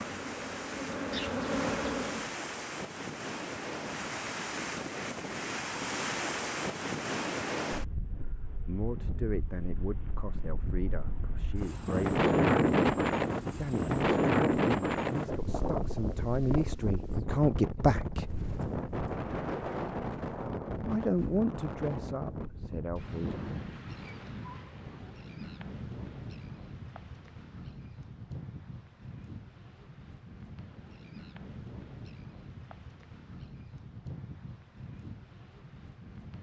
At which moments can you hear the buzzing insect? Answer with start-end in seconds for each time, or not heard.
0.0-2.4.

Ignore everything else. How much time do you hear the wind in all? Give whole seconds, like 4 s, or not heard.
36 s.